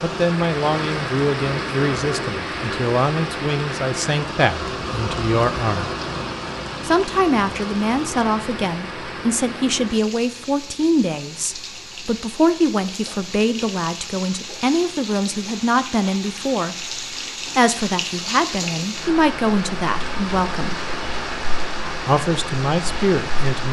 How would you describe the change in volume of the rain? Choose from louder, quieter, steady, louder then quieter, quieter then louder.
quieter then louder.